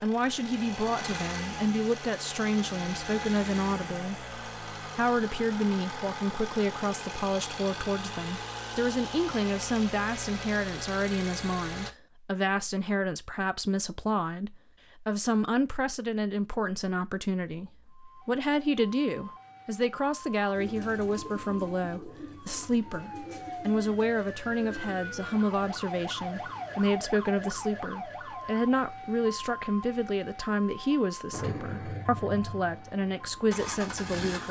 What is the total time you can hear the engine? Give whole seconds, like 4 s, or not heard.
15 s.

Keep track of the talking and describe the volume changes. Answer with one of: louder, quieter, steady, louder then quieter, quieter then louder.
steady.